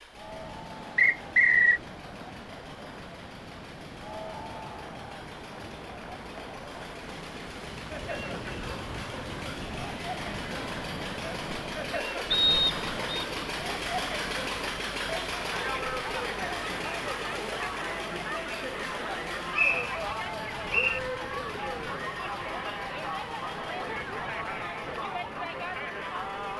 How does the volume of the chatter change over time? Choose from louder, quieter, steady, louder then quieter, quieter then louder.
louder.